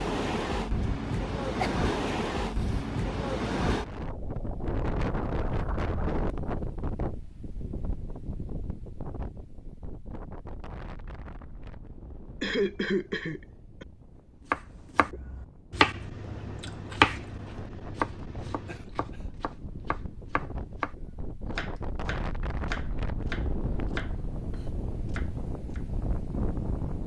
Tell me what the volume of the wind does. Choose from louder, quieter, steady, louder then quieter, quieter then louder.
quieter then louder.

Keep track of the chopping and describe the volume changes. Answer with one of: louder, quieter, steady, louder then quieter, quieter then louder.
quieter.